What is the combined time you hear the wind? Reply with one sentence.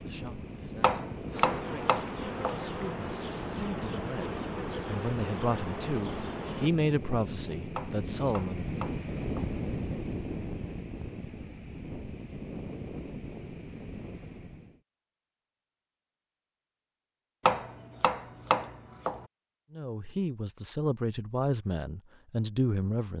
The wind can be heard for 15 seconds in total.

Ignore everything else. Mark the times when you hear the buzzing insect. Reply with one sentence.
The buzzing insect can be heard from 0.0 to 6.7 s.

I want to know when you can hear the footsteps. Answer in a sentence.
The footsteps can't be heard in this clip.